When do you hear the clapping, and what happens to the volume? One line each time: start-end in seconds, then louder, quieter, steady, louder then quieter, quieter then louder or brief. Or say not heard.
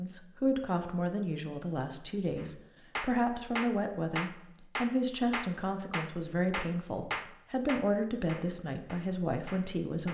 2.4-10.0 quieter.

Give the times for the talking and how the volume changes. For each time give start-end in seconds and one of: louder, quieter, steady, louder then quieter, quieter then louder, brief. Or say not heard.
0.0-10.0 steady.